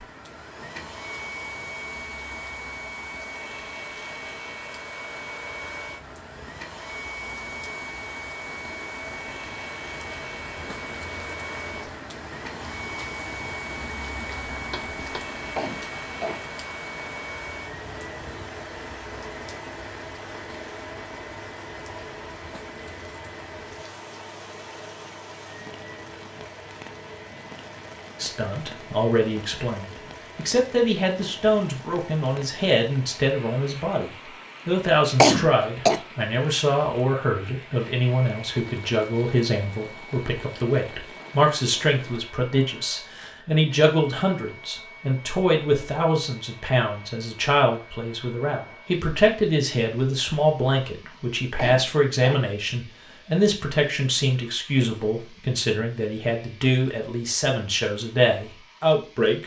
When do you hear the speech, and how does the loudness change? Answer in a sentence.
The speech can be heard from 28.2 to 59.4 s, at a steady volume.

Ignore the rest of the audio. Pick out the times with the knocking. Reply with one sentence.
The knocking can be heard from 14.5 to 15.2 s.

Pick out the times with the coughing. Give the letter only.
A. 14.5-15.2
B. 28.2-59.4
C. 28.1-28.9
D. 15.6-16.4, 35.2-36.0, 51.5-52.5
D.